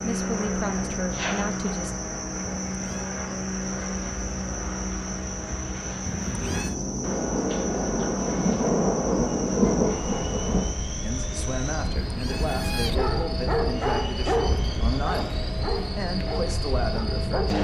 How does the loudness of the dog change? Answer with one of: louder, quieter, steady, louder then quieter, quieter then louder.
quieter.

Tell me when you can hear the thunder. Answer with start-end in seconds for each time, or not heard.
7.0-10.8.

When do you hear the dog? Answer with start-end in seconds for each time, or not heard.
12.9-17.5.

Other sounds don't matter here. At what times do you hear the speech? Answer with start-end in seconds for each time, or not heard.
0.0-1.9, 11.0-17.5.